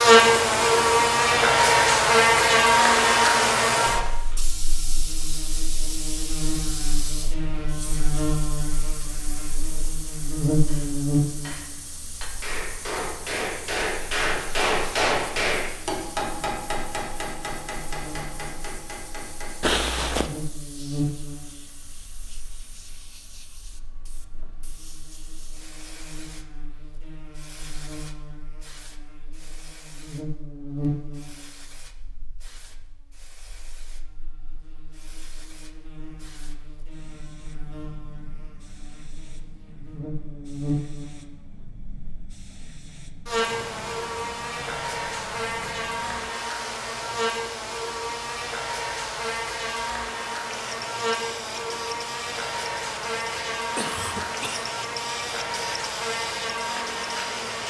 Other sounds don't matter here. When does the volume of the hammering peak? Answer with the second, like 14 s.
15 s.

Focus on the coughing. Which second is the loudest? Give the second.
20 s.